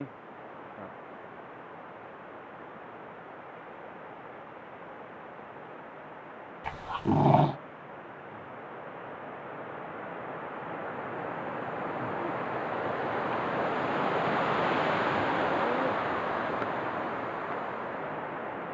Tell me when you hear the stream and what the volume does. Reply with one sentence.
You can hear the stream from 0.0 to 18.6 s, getting louder.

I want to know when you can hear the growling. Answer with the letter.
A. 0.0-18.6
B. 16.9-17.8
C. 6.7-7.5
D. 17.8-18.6
C.